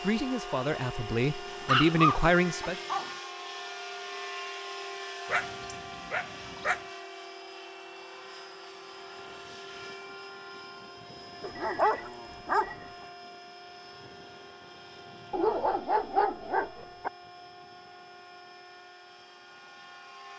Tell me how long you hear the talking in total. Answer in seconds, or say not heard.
3 s.